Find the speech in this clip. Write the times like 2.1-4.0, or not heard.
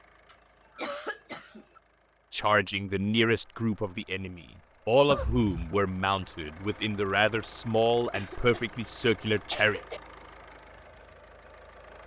2.3-9.8.